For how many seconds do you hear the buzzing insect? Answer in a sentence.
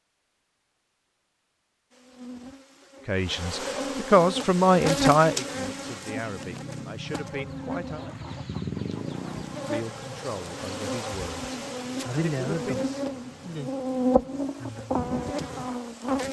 The buzzing insect can be heard for 14 seconds in total.